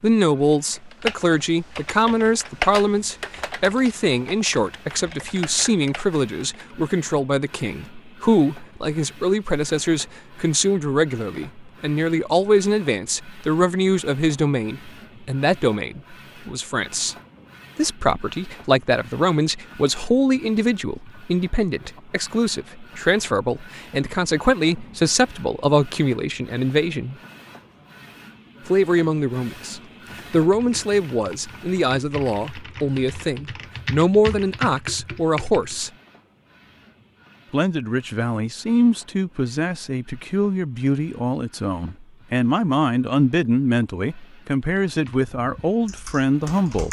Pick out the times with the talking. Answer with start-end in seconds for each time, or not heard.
0.0-17.1, 17.8-27.1, 28.6-35.9, 37.5-46.8.